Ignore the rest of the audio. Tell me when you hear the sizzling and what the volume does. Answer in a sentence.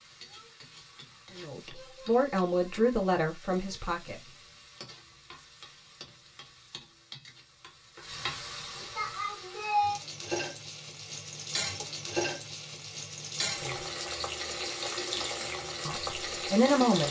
You can hear the sizzling from 0.0 to 17.0 s, getting louder.